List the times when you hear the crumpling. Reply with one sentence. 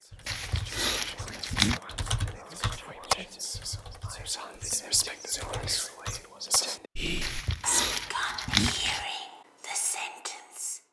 The crumpling can be heard from 0.2 to 1.8 s and from 7.2 to 9.1 s.